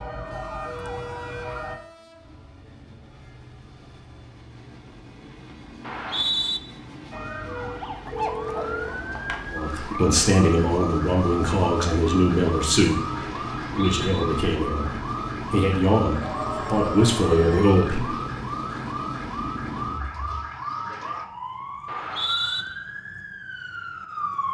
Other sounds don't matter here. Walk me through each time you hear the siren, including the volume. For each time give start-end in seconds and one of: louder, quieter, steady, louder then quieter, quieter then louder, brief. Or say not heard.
0.0-1.8 brief
7.1-24.4 steady.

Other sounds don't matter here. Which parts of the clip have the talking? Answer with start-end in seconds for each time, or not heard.
9.5-18.1.